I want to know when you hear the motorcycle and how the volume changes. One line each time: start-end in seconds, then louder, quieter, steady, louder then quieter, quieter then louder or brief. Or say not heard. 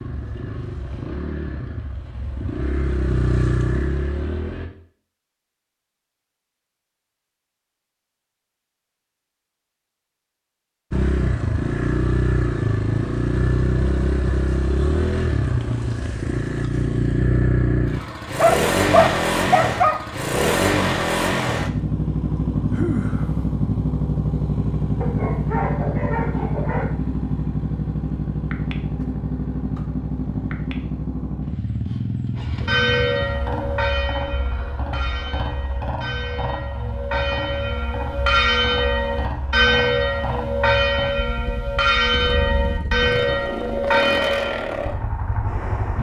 0.0-4.7 louder
10.9-45.9 quieter.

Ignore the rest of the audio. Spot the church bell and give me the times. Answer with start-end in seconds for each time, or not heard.
32.4-44.8.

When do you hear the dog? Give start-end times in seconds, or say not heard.
18.4-20.0, 25.0-26.9.